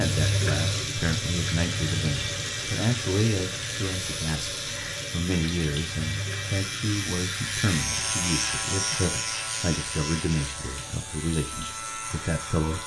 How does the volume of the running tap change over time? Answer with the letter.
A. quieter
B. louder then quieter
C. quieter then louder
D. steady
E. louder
A.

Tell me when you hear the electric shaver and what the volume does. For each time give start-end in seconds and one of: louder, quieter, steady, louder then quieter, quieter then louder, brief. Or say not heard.
0.0-12.8 louder then quieter.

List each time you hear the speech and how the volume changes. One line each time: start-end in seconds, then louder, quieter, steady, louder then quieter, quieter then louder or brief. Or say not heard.
0.0-12.8 steady.